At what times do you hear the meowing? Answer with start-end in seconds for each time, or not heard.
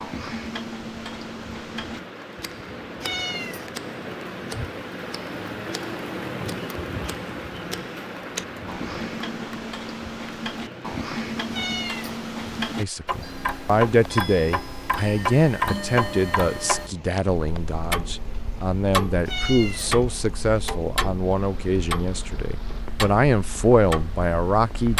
3.0-3.7, 11.5-12.2, 19.2-19.9.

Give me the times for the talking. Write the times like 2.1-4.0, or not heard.
12.8-24.9.